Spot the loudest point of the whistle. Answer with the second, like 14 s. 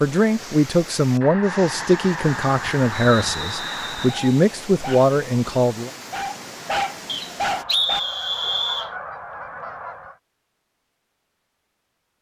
8 s.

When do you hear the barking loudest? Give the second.
7 s.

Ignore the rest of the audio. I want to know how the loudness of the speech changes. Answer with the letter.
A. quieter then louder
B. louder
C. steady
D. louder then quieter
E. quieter
C.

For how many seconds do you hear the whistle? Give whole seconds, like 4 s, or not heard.
3 s.